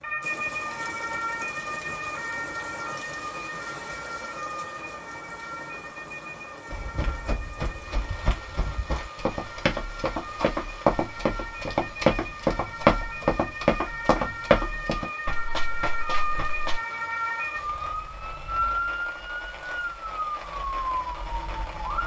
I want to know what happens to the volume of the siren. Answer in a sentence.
The loudness of the siren goes down, then up.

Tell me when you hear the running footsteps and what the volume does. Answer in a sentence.
You can hear the running footsteps from 6.7 to 16.8 s, getting louder then quieter.